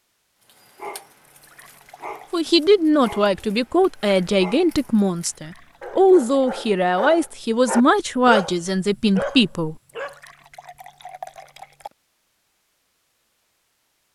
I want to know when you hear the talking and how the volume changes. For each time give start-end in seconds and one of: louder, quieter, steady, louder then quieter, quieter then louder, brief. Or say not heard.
2.3-9.8 steady.